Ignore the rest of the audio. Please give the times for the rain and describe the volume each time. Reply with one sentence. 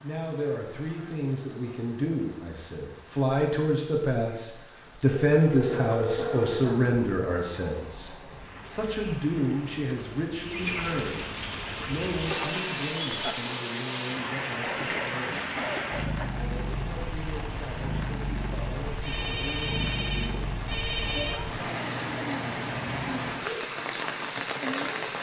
You can hear the rain from 0.0 to 25.1 s, getting louder.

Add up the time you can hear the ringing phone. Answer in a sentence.
You can hear the ringing phone for 5 seconds altogether.